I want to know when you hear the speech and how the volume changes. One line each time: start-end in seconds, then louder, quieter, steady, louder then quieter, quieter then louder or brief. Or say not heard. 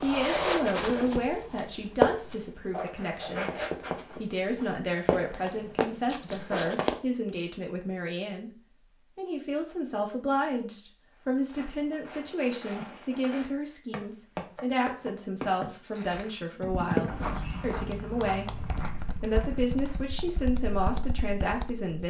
0.0-22.0 steady.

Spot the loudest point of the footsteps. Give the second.
2 s.